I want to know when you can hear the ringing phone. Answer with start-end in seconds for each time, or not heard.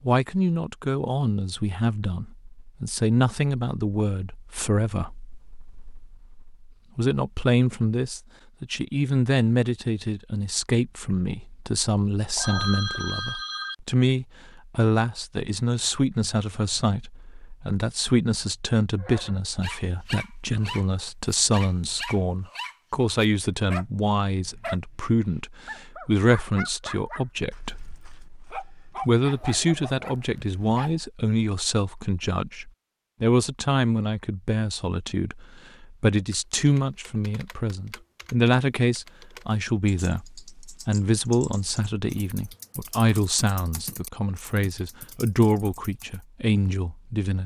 12.3-13.8.